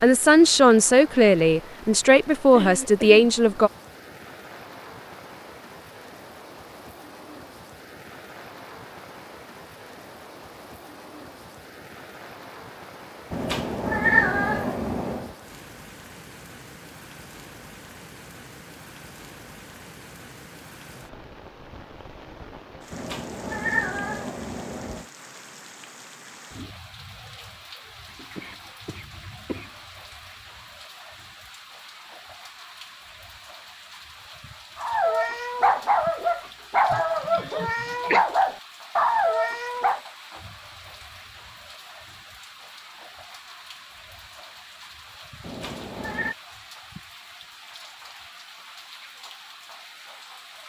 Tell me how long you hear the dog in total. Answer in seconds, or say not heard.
5 s.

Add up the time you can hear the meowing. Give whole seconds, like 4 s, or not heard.
5 s.